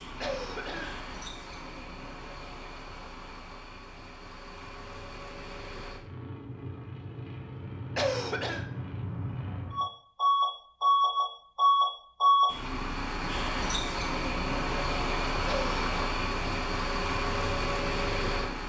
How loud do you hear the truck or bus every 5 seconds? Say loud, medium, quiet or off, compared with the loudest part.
quiet, quiet, loud, medium.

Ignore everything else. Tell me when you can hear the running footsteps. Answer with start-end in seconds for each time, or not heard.
not heard.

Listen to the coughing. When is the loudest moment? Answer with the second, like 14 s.
8 s.